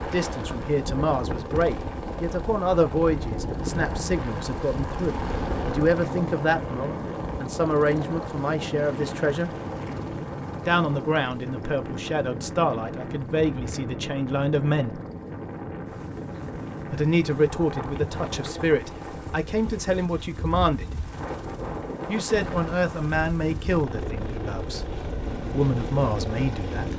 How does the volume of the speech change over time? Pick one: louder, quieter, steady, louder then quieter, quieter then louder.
steady.